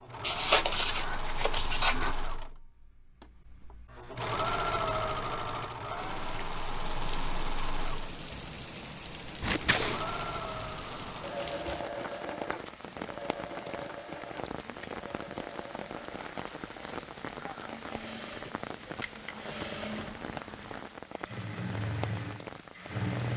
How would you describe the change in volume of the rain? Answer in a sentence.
The loudness of the rain stays about the same.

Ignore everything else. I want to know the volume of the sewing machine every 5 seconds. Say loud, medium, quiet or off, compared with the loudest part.
loud, loud, loud, medium, loud.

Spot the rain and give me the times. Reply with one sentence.
You can hear the rain from 6.0 to 23.3 s.